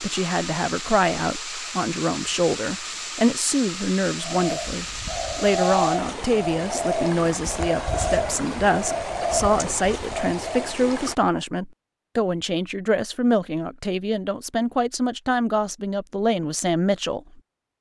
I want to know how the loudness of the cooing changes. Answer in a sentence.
The loudness of the cooing stays about the same.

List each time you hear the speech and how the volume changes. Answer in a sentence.
The speech can be heard from 0.0 to 17.2 s, at a steady volume.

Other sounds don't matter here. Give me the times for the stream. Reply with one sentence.
The stream can be heard from 0.0 to 11.2 s.